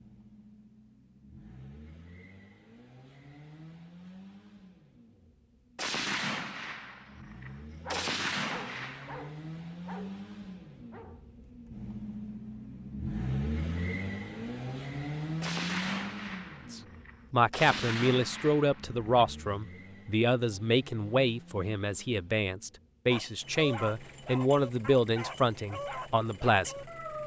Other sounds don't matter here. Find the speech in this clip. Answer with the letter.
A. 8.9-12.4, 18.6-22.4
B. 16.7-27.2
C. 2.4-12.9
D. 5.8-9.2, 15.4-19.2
B.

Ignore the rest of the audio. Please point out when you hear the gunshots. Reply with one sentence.
You can hear the gunshots from 5.8 to 9.2 s and from 15.4 to 19.2 s.